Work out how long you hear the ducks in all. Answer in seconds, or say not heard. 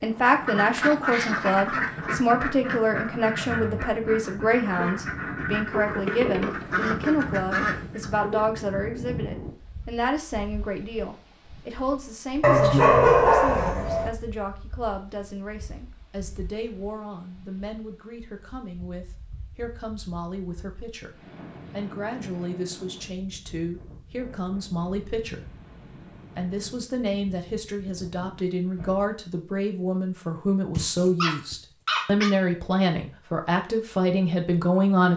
8 s.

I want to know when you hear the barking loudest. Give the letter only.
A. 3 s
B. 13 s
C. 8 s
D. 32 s
B.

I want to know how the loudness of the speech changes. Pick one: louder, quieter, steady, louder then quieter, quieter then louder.
quieter then louder.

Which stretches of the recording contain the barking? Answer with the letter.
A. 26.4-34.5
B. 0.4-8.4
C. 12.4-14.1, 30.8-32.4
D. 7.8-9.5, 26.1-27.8
C.